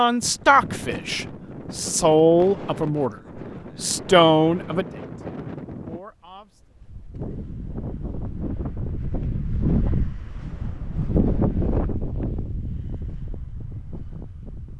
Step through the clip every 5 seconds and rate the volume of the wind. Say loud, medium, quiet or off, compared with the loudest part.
medium, loud, loud.